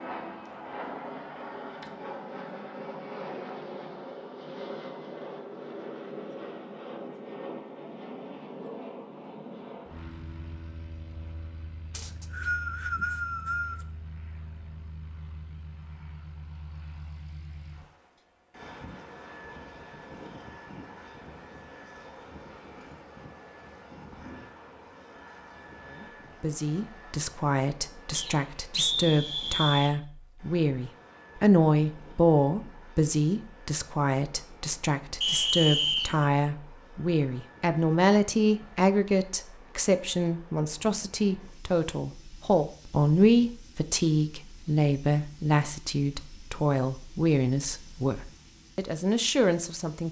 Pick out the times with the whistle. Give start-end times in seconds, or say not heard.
11.9-13.8, 28.1-29.9, 35.2-36.2.